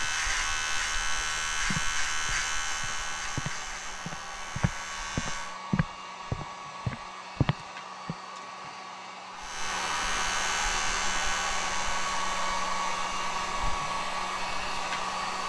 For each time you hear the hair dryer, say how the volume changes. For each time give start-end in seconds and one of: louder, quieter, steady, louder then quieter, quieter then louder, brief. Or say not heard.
0.0-15.4 louder.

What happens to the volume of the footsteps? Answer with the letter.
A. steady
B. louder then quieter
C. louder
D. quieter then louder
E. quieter
C.